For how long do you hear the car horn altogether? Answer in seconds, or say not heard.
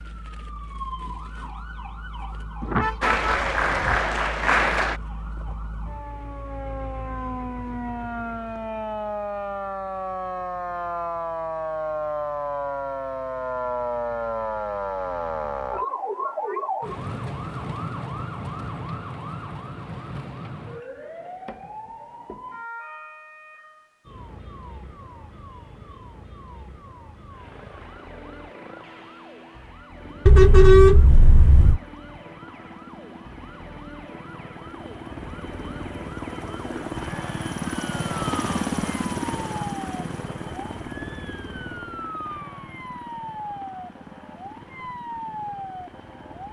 3 s.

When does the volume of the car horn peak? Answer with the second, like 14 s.
31 s.